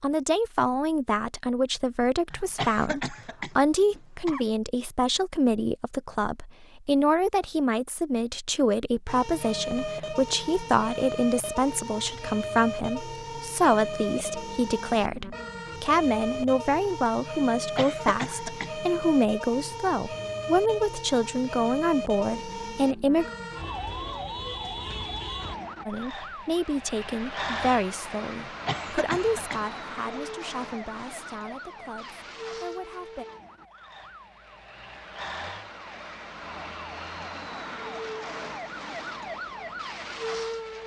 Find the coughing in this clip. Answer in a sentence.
You can hear the coughing from 2.3 to 4.5 s, from 17.6 to 18.8 s and from 28.4 to 29.6 s.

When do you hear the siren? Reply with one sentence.
The siren can be heard from 9.1 to 40.8 s.